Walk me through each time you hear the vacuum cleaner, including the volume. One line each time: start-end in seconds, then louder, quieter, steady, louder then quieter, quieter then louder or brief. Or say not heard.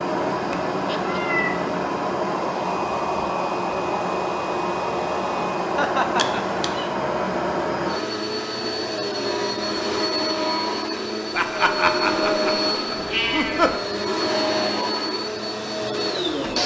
0.0-16.6 steady.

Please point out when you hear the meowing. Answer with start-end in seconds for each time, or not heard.
0.3-1.7, 6.2-6.8, 12.9-13.8.